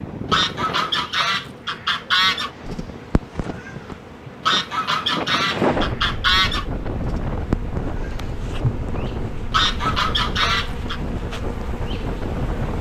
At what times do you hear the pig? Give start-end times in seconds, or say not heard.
not heard.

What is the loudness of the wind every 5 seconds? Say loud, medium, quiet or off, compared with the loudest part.
medium, loud, loud.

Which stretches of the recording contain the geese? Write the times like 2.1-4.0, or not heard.
0.3-2.5, 4.5-6.7, 9.5-11.0.